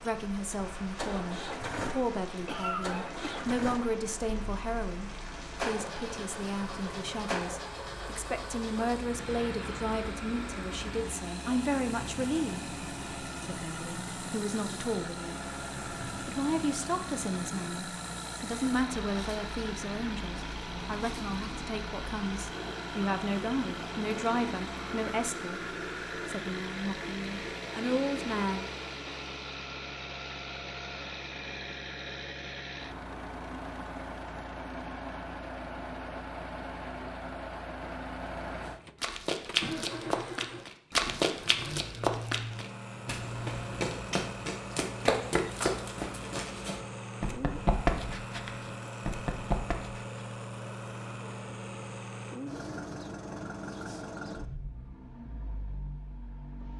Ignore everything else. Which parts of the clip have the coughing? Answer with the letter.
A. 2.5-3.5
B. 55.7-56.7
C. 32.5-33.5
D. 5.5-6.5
A.